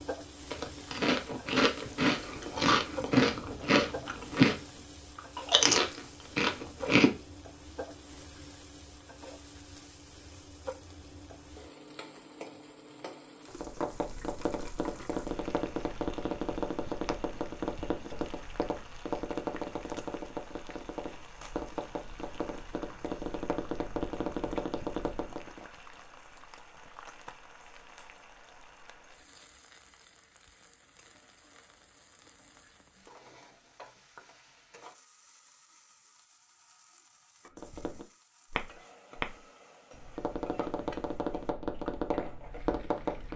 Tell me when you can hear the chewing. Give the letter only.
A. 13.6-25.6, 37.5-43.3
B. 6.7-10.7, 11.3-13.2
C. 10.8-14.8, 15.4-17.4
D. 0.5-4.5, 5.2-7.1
D.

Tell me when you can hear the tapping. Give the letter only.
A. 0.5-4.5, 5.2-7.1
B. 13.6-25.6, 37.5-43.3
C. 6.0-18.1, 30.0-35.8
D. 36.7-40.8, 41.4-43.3
B.